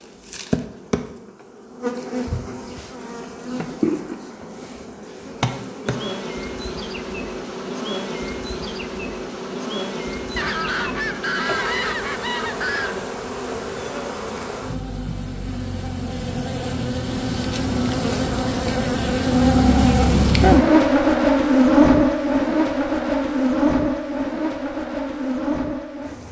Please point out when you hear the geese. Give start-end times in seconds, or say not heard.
10.3-13.1.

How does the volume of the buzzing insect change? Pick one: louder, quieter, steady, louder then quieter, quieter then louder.
louder.